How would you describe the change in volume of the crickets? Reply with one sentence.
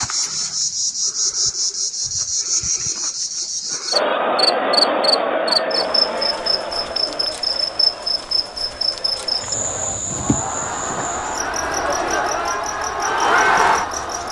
The loudness of the crickets goes down.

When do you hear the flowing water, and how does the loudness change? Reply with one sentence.
The flowing water can't be heard in this clip.